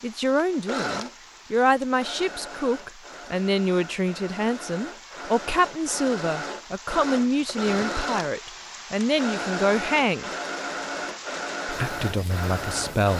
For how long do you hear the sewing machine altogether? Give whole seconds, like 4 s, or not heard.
13 s.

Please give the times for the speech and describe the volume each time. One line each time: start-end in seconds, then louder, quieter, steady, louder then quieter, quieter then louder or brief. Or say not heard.
0.0-10.3 steady
11.7-13.1 brief.